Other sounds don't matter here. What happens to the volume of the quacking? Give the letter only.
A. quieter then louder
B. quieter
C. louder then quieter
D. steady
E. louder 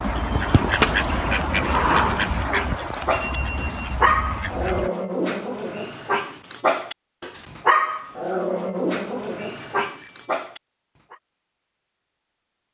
B.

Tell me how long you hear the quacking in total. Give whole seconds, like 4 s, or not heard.
5 s.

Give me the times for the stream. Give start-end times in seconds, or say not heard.
not heard.